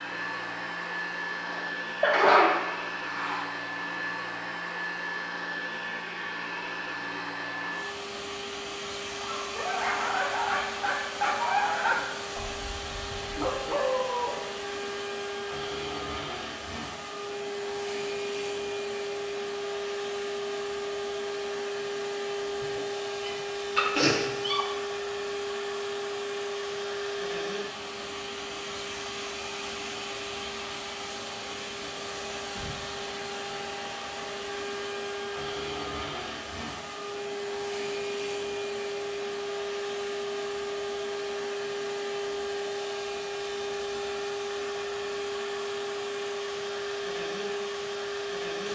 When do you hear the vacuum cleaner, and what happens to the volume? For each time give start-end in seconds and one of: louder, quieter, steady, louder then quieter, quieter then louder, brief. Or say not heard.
0.0-48.7 steady.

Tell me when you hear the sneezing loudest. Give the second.
2 s.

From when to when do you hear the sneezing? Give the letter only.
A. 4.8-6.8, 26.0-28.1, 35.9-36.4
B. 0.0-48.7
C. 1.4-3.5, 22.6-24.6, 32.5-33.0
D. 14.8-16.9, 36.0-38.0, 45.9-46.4
C.